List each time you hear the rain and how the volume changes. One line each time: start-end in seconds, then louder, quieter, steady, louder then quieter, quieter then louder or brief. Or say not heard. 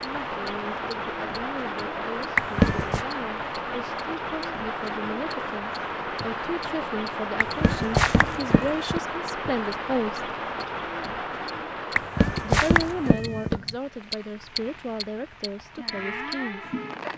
0.0-17.1 quieter.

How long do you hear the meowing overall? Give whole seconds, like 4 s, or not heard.
4 s.